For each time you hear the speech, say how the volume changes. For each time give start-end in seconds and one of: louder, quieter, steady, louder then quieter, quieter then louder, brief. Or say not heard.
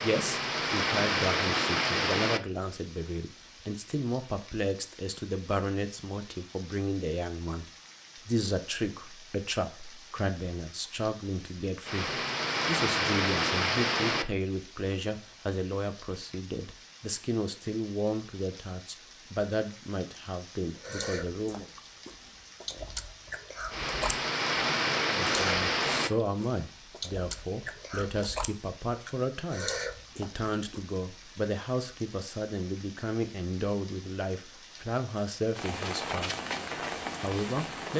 0.0-21.6 steady
25.4-36.3 steady
37.2-37.9 brief.